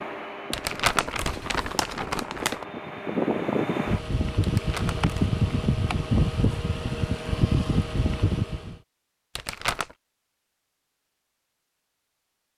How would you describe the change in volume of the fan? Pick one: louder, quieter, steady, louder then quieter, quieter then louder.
louder.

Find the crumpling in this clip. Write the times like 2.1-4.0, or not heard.
0.5-2.6, 4.4-5.4, 9.3-9.9.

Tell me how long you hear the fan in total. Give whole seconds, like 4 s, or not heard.
9 s.